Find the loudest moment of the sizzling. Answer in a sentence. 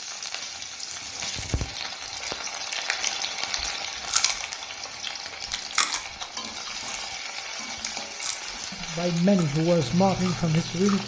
The loudest moment of the sizzling is at 3 seconds.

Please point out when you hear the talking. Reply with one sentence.
The talking can be heard from 8.7 to 11.0 s.